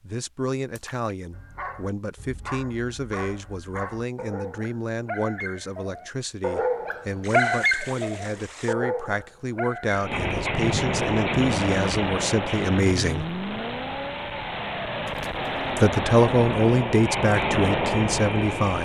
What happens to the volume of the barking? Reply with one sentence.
The loudness of the barking goes up, then down.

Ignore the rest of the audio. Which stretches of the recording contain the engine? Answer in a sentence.
The engine can be heard from 9.9 to 18.8 s.